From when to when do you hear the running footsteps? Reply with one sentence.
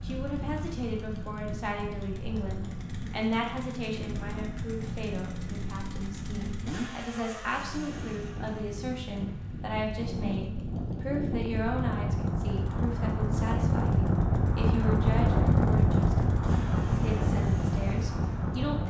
You can't hear the running footsteps here.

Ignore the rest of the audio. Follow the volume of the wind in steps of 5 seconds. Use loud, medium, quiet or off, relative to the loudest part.
quiet, quiet, loud, loud.